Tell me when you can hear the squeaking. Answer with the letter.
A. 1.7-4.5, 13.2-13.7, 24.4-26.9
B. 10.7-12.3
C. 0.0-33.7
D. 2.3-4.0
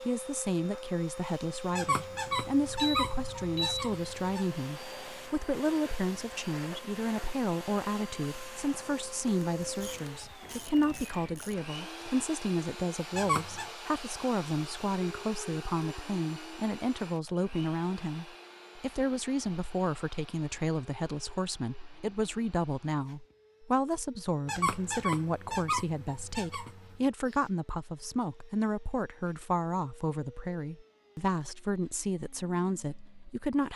A.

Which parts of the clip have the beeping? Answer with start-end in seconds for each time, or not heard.
2.3-4.0.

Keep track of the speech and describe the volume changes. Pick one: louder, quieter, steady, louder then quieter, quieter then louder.
steady.